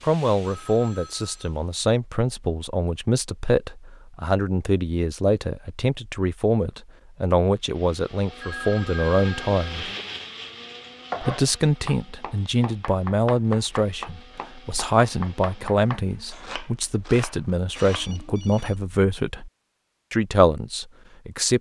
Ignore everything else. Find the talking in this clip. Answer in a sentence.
The talking can be heard from 0.0 to 9.9 s, from 11.2 to 19.5 s and from 20.1 to 21.5 s.